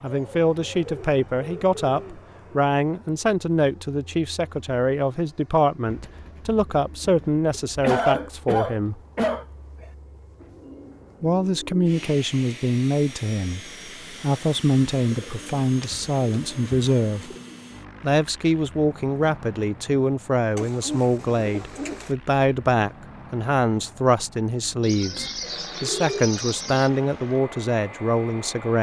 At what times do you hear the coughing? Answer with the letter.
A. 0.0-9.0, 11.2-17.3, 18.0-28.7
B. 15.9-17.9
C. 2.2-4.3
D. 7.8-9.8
D.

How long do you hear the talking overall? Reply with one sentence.
You can hear the talking for 26 seconds altogether.